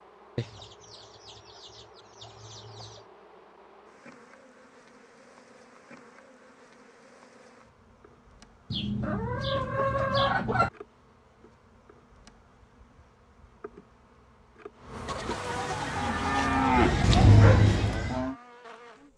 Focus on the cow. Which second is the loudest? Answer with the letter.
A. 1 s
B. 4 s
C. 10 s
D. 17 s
D.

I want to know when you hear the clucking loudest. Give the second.
10 s.